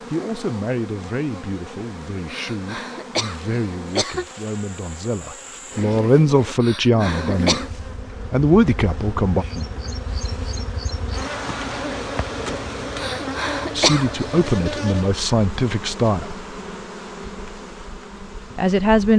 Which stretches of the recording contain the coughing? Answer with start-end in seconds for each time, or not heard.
2.3-4.2, 6.6-7.7, 12.9-14.3.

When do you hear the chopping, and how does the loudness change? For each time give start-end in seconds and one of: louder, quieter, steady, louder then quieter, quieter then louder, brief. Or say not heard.
not heard.